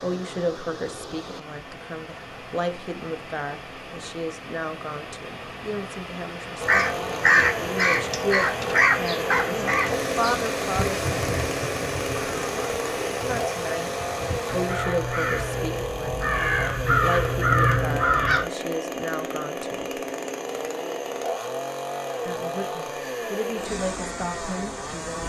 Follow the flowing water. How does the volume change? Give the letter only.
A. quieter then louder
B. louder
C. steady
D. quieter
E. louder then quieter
B.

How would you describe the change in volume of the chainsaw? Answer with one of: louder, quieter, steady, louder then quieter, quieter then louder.
steady.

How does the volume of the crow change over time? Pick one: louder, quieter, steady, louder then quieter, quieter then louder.
quieter then louder.